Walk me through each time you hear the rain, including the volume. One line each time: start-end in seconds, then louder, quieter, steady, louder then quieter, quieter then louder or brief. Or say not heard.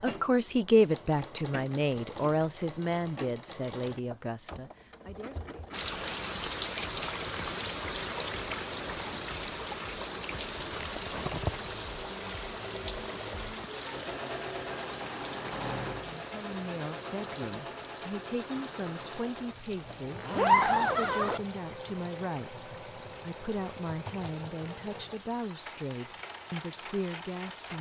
5.7-27.7 quieter.